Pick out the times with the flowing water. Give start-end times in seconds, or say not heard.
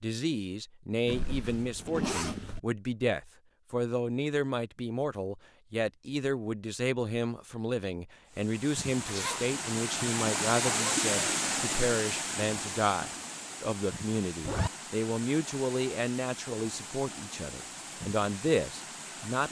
8.2-19.4.